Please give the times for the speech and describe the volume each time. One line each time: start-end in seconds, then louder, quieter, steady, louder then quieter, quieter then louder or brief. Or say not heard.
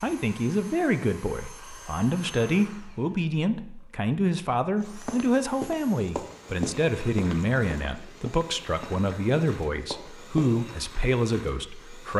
0.0-12.1 steady.